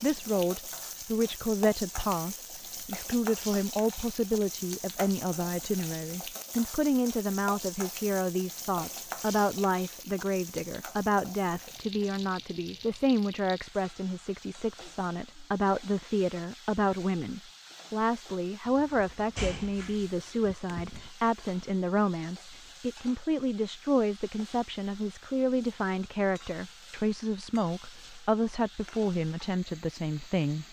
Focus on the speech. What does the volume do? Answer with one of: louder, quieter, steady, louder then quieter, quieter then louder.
steady.